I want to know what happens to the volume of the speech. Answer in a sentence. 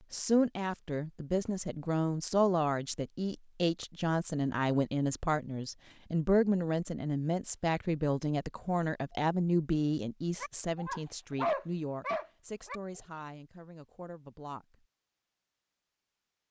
The volume of the speech goes down.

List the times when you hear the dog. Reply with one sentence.
The dog can be heard from 10.4 to 13.1 s.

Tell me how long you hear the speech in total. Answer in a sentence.
You can hear the speech for 15 seconds altogether.